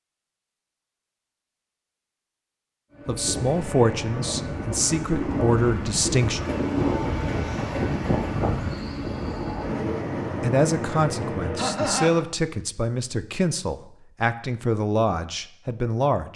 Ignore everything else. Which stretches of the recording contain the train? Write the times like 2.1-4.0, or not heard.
2.9-12.1.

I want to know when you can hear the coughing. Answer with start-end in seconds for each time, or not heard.
11.6-12.2.